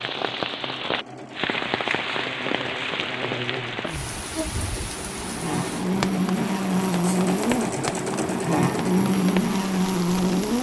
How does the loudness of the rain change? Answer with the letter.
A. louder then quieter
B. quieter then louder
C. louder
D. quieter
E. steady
D.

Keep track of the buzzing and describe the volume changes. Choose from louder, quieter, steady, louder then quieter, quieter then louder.
louder.